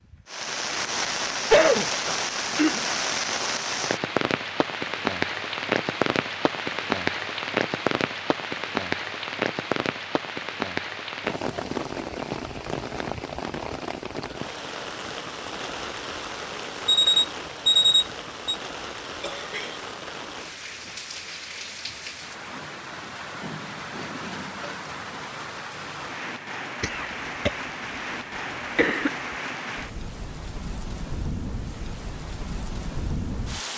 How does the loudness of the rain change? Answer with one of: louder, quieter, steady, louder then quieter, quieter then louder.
quieter.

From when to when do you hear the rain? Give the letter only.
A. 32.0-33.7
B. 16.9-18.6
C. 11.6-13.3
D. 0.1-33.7
D.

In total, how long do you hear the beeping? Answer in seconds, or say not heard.
2 s.